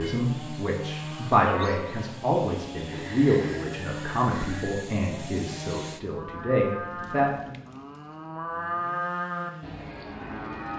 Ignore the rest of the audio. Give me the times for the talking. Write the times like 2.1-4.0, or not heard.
0.0-7.5.